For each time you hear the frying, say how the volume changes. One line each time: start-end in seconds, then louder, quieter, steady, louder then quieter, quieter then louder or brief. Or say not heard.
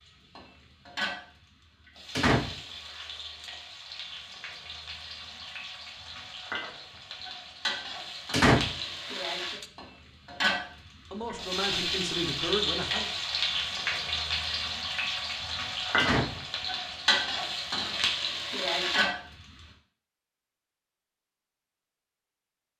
0.0-19.4 louder.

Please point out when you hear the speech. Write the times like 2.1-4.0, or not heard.
11.1-13.2.